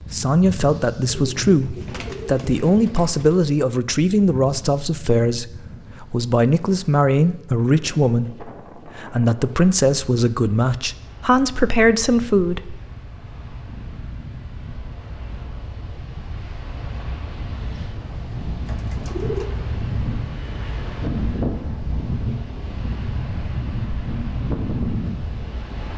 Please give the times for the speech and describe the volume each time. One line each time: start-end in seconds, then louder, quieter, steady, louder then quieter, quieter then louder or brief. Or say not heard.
0.1-12.8 steady.